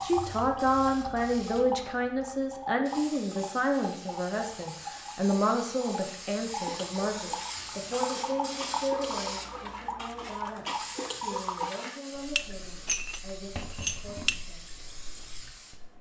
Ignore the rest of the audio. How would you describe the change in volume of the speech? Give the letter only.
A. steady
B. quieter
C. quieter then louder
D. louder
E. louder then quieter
B.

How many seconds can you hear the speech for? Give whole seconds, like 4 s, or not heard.
15 s.